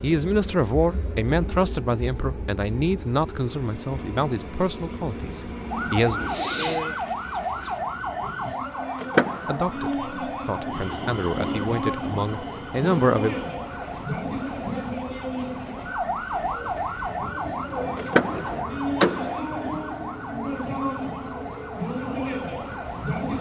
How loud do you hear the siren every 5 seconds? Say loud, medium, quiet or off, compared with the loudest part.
off, loud, loud, loud, loud.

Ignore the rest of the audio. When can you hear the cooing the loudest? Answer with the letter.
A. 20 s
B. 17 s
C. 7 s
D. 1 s
C.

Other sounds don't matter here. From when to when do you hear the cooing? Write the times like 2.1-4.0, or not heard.
6.2-7.8, 16.4-18.6.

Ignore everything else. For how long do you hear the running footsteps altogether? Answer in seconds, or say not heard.
not heard.